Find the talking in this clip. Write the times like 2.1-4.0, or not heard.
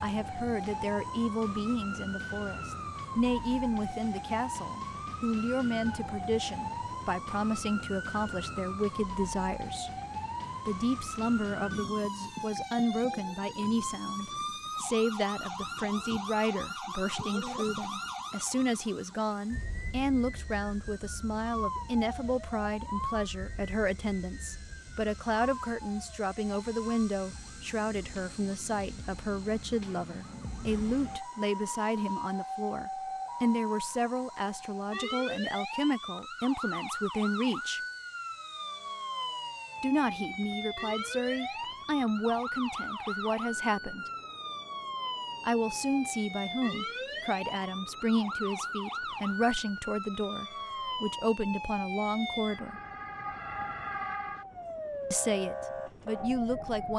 0.0-9.9, 10.7-37.8, 39.8-44.1, 45.4-52.8, 55.1-56.9.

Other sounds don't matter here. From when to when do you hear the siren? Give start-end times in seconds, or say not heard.
0.0-56.9.